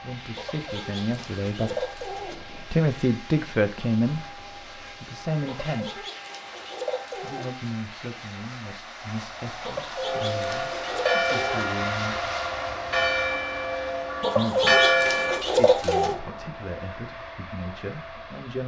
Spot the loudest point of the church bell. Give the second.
15 s.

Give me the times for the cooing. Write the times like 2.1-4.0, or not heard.
0.3-2.4, 5.5-7.5, 9.6-11.7, 14.2-16.2.